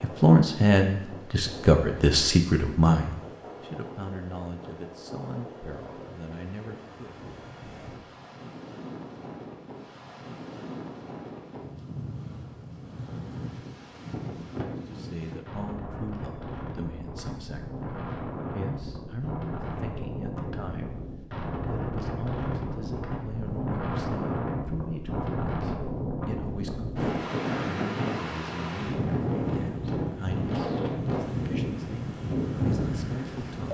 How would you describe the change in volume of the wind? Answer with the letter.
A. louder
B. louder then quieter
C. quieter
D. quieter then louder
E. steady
A.